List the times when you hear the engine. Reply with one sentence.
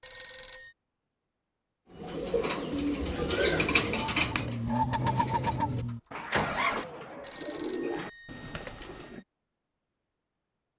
You can hear the engine from 3.0 to 6.8 s.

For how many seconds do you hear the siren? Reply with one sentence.
The siren can't be heard in this clip.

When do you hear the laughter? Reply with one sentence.
The laughter can't be heard in this clip.